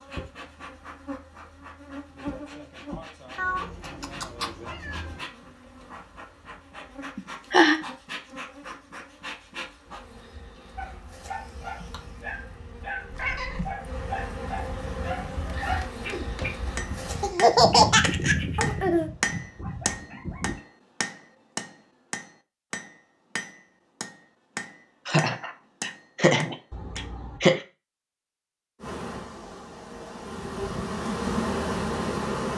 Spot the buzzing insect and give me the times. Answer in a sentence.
You can hear the buzzing insect from 0.0 to 17.4 s and from 28.8 to 32.5 s.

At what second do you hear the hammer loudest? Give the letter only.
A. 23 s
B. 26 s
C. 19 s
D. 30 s
C.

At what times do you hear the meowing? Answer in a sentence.
The meowing can be heard from 3.4 to 5.2 s, from 13.1 to 13.8 s and from 26.7 to 27.4 s.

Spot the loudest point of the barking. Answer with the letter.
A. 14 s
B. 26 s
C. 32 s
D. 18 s
D.